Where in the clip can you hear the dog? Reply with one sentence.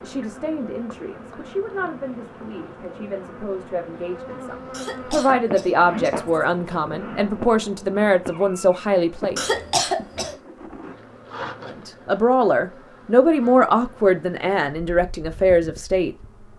The dog can't be heard in this clip.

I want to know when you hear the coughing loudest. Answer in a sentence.
The loudest moment of the coughing is at 10 seconds.